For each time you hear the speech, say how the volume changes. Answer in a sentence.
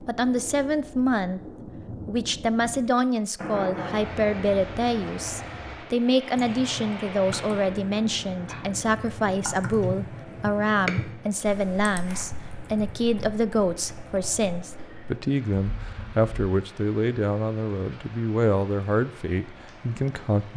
The speech can be heard briefly from 0.1 to 1.4 s; and from 2.0 to 20.5 s, at a steady volume.